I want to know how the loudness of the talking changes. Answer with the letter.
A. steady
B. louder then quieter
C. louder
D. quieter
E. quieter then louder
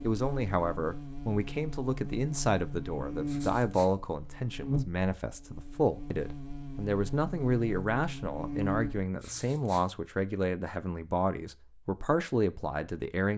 A.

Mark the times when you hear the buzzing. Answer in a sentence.
You can hear the buzzing from 0.0 to 9.1 s.